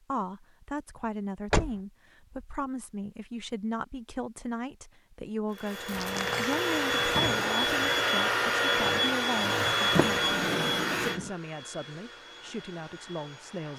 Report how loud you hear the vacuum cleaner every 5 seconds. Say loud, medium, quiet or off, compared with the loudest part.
off, loud, medium.